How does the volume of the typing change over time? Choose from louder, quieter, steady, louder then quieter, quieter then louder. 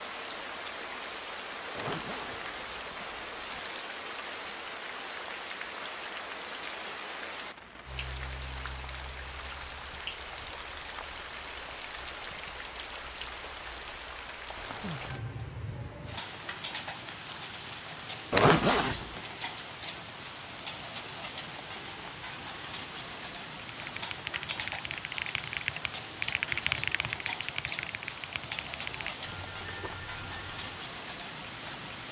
louder then quieter.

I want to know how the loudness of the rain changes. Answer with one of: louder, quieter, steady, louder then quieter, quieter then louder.
steady.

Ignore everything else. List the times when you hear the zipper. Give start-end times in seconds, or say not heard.
1.8-3.6, 18.3-19.2.